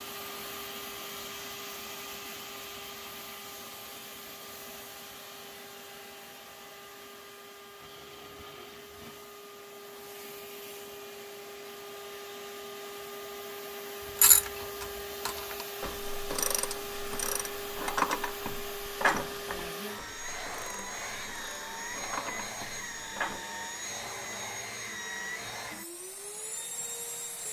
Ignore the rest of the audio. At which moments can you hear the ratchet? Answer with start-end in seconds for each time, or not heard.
14.2-23.4.